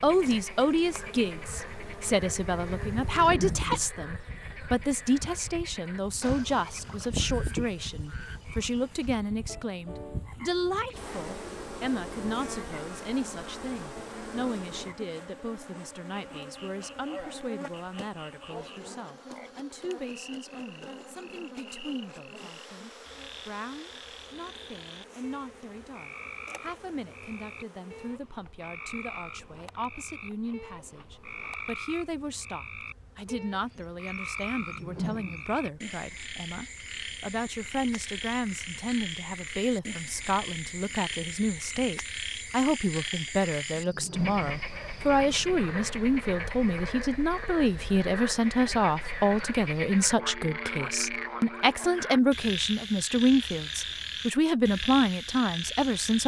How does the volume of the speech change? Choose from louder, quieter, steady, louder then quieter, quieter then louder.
quieter then louder.